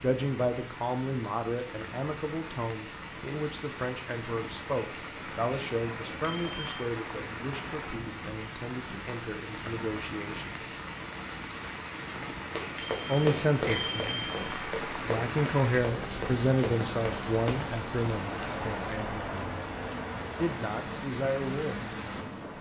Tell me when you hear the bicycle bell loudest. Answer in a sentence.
The loudest moment of the bicycle bell is at 14 seconds.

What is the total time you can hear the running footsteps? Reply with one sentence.
You can hear the running footsteps for 5 seconds altogether.